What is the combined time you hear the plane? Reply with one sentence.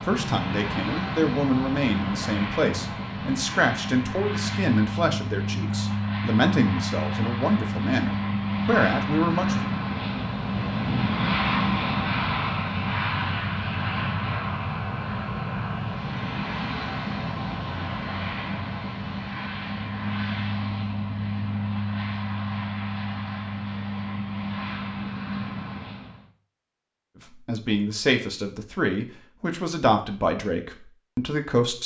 You can hear the plane for 26 seconds altogether.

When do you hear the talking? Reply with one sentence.
You can hear the talking from 0.0 to 9.6 s and from 27.2 to 31.8 s.